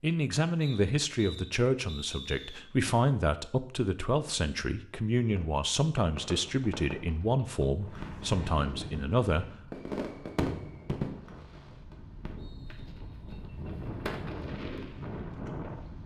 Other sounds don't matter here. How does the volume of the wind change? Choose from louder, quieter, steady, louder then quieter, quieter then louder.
quieter then louder.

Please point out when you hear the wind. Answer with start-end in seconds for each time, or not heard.
7.8-16.0.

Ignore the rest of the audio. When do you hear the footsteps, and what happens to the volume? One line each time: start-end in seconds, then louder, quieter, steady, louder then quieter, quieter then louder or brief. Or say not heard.
not heard.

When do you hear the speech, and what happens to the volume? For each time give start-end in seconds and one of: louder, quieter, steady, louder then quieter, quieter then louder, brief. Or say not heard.
0.0-9.4 steady.